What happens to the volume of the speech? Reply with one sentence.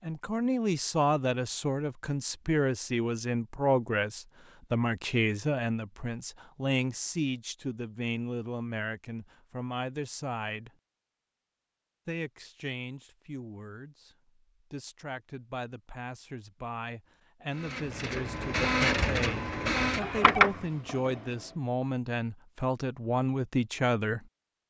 The volume of the speech goes down, then up.